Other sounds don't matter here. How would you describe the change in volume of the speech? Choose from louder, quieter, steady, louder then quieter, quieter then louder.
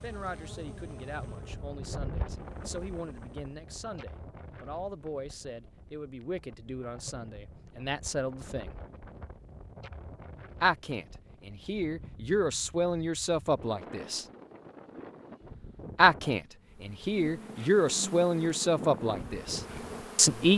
louder.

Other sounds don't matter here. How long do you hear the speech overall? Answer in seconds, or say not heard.
17 s.